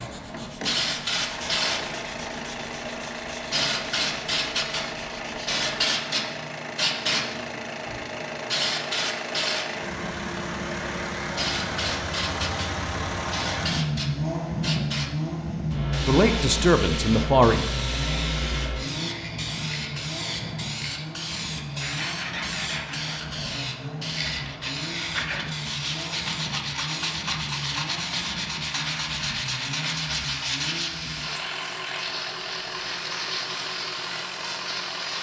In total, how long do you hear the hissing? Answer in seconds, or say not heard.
35 s.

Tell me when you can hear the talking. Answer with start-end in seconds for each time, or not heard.
16.1-17.6.